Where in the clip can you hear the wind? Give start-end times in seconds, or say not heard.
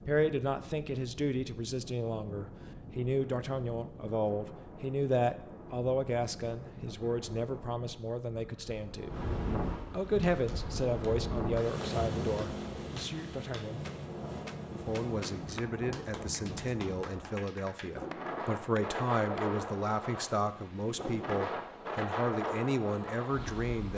0.0-23.9.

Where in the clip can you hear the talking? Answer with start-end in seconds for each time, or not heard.
0.1-9.2, 9.9-13.8, 14.8-23.9.